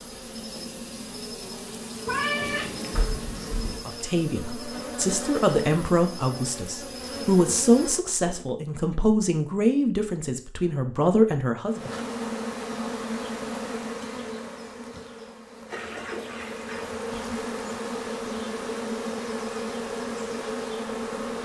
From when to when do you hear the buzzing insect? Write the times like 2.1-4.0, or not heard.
0.0-8.6, 11.7-21.4.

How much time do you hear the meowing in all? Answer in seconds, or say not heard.
2 s.